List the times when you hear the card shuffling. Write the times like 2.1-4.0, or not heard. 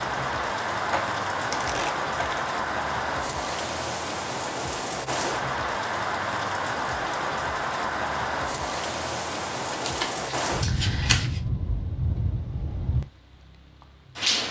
0.9-2.5, 9.7-11.4.